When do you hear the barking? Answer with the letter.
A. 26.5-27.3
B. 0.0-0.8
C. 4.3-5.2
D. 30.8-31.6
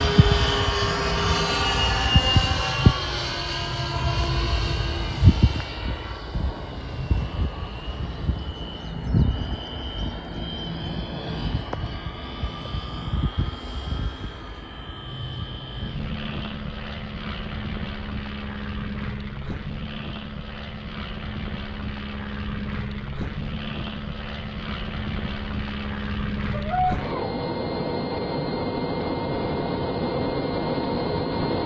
A.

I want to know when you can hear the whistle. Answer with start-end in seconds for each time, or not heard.
not heard.